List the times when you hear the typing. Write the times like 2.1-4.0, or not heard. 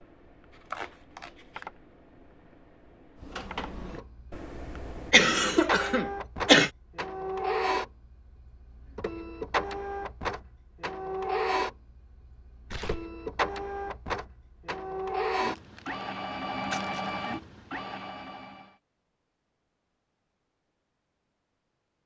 0.0-5.2.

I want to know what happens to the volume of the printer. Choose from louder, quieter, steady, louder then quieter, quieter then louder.
steady.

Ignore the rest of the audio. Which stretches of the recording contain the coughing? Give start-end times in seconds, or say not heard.
5.1-6.7.